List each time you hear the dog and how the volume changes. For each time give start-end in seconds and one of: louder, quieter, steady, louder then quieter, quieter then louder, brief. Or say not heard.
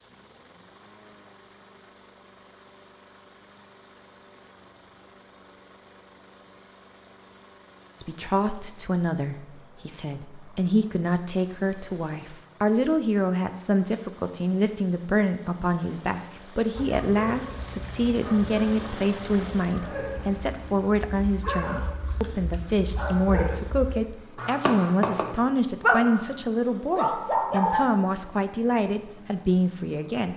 16.8-27.9 louder.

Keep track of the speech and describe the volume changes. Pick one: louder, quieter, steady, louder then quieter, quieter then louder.
steady.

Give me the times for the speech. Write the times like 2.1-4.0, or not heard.
8.0-30.3.